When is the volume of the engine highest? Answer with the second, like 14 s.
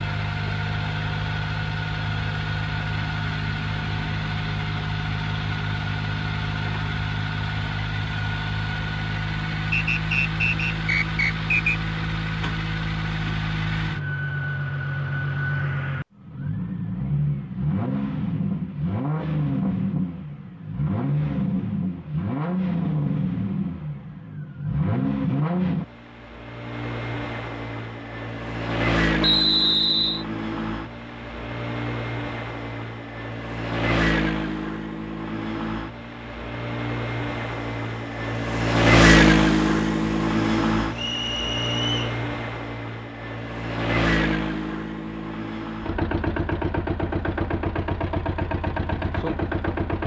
39 s.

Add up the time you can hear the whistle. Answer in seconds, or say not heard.
4 s.